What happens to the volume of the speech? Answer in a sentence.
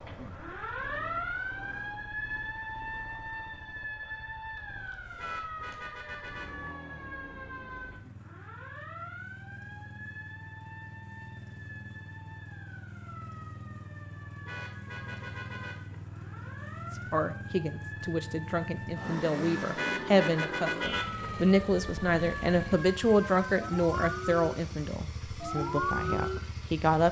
The volume of the speech goes up, then down.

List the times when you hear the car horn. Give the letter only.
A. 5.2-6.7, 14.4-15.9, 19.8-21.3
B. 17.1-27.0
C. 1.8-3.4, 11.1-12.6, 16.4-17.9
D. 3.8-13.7
A.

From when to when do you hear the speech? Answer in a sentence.
You can hear the speech from 17.1 to 27.0 s.